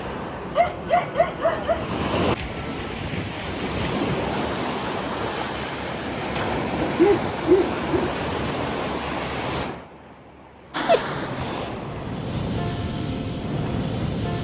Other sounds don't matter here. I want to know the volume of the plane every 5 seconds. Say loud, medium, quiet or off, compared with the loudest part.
medium, off, loud.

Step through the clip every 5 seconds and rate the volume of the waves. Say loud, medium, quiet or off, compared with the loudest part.
loud, loud, medium.